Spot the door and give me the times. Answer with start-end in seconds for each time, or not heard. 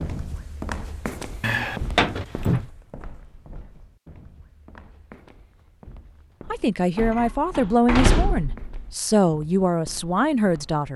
1.4-2.6, 7.0-8.9.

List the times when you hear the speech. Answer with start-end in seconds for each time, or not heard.
6.5-10.9.